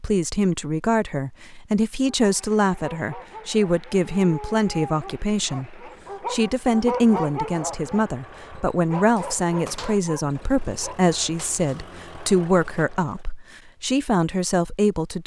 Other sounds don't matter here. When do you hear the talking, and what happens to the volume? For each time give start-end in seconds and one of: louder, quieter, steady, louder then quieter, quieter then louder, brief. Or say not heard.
0.0-15.2 steady.